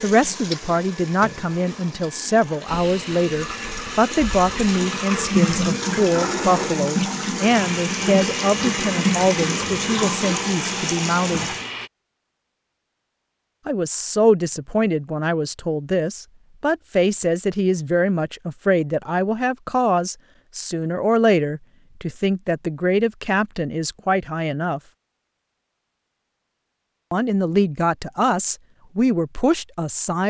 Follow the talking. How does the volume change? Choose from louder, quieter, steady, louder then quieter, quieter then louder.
steady.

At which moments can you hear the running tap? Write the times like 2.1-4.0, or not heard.
0.0-11.7.